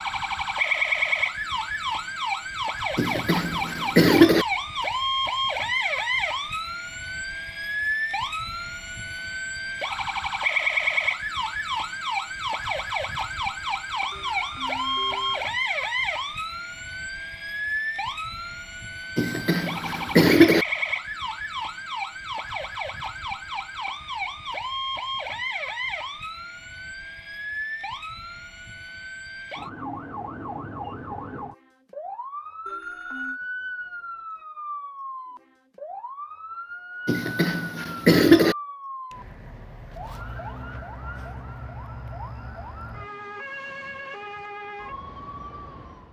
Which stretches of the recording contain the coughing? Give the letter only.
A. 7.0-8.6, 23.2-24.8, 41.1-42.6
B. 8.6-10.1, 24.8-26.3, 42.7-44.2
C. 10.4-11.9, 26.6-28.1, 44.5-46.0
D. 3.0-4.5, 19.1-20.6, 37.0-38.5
D.